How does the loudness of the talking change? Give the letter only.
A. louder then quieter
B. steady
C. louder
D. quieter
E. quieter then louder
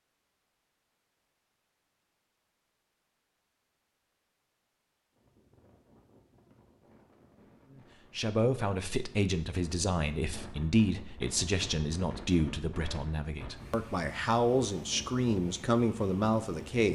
B.